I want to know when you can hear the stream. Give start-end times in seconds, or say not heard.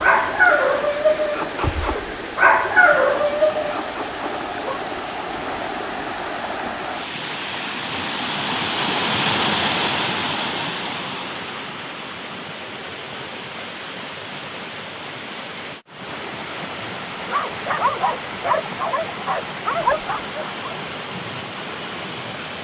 0.0-22.5.